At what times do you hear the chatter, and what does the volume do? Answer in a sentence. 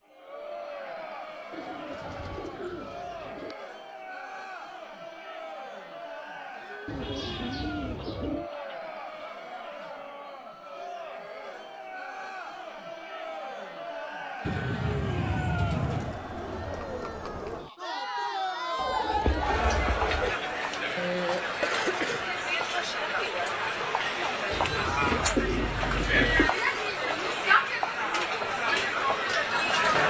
You can hear the chatter from 0.0 to 30.0 s, getting louder.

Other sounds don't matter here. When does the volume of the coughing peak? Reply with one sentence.
The loudest moment of the coughing is at 21 seconds.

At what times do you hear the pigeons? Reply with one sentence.
The pigeons can be heard from 1.5 to 3.5 s, from 6.8 to 8.5 s, from 14.4 to 16.1 s, from 18.8 to 20.4 s and from 24.5 to 26.5 s.